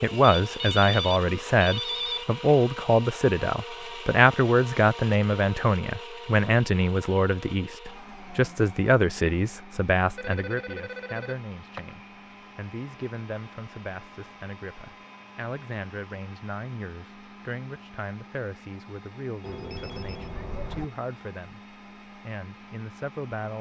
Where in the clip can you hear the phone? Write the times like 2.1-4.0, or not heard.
0.2-2.2, 10.2-11.8, 19.4-20.9.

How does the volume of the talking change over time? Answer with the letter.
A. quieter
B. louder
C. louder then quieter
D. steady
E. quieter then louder
A.